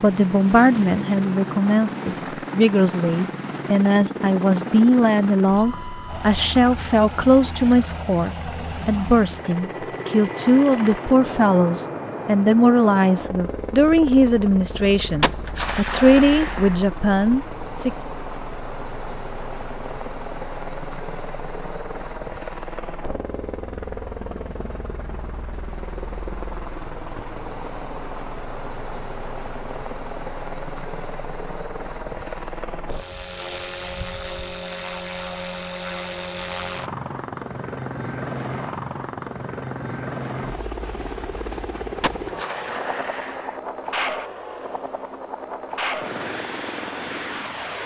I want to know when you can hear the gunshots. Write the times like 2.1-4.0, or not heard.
15.2-16.8, 42.0-43.6.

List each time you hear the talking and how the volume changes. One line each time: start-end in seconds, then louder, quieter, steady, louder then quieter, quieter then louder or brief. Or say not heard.
0.0-17.9 steady.